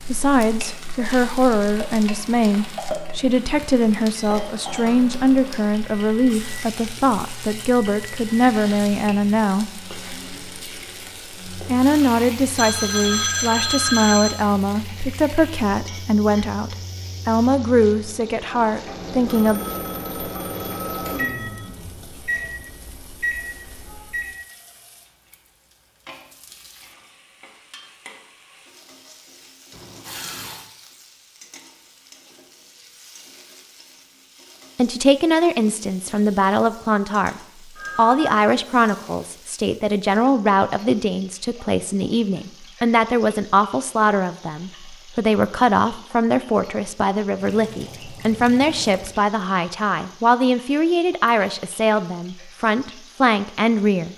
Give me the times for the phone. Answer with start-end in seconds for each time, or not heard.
12.6-14.4, 19.2-21.7, 37.8-38.4.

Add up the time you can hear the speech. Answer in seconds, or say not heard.
37 s.